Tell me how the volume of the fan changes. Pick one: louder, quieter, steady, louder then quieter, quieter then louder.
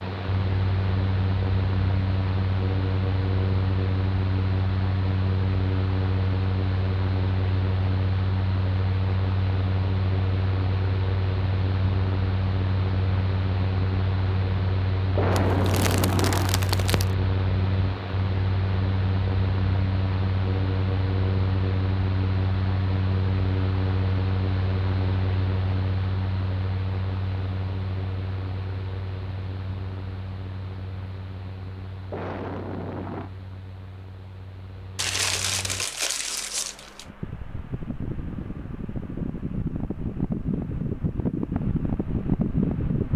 quieter then louder.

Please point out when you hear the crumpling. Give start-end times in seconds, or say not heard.
15.3-17.1, 35.0-37.0.